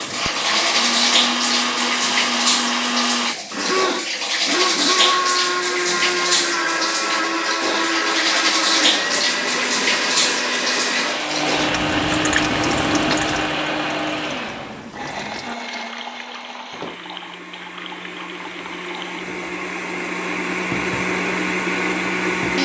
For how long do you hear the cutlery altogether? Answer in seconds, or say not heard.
not heard.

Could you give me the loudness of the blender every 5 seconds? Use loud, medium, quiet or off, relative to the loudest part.
loud, loud, loud, medium, loud.